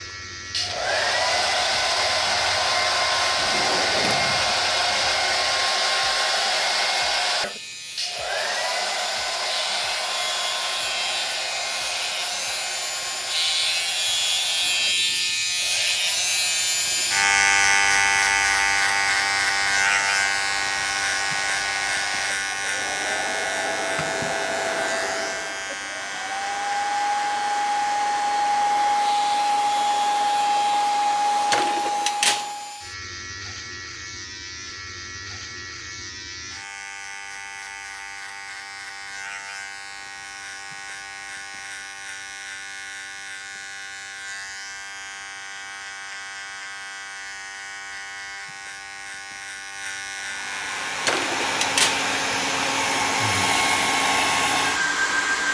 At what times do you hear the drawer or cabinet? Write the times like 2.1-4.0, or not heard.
3.4-4.5, 31.5-32.5, 51.0-52.0.